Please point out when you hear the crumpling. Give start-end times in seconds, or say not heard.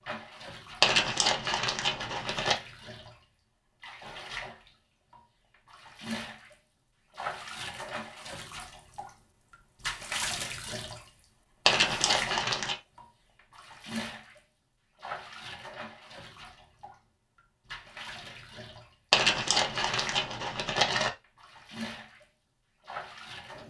0.8-2.5, 11.7-12.8, 19.1-21.1.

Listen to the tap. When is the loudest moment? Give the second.
10 s.